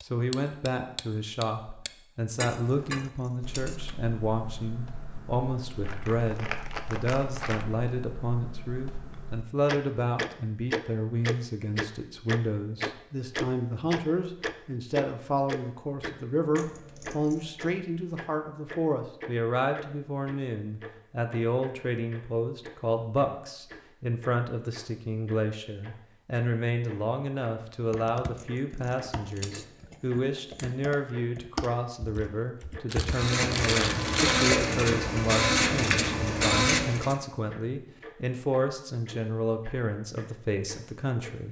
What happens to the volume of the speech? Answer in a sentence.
The volume of the speech stays about the same.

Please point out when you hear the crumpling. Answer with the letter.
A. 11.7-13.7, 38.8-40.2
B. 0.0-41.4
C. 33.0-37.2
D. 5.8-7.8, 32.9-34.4
D.